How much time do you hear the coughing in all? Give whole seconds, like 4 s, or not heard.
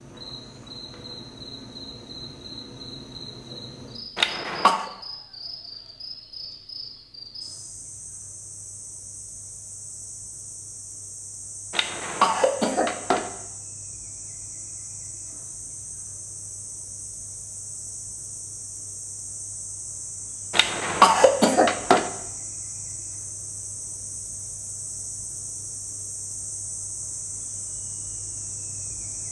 4 s.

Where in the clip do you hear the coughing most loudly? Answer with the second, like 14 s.
21 s.